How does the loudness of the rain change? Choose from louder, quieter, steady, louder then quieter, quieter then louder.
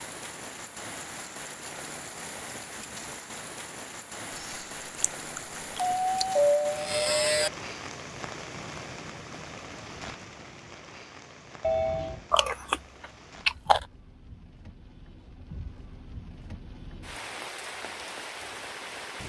quieter then louder.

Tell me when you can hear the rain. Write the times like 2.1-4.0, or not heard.
0.0-19.2.